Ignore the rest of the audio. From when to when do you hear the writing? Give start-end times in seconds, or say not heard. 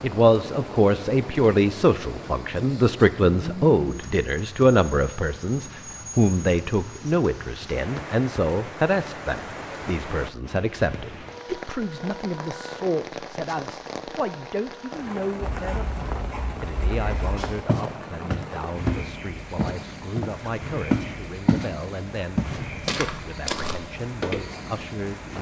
15.4-17.6.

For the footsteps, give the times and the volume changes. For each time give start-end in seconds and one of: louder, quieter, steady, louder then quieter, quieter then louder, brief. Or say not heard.
16.9-21.7 quieter then louder
22.4-24.4 brief.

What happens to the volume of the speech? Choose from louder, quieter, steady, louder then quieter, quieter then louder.
quieter.